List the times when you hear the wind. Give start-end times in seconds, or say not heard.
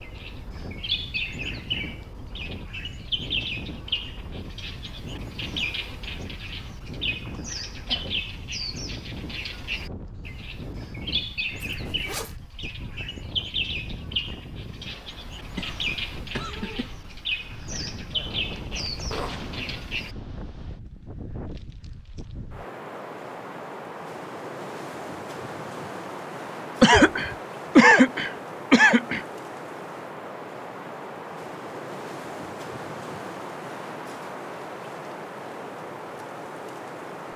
0.0-37.3.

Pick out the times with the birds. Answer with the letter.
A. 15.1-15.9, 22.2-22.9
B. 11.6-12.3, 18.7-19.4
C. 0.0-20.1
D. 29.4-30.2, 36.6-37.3
C.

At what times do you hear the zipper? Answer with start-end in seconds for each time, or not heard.
11.6-12.3, 18.7-19.4.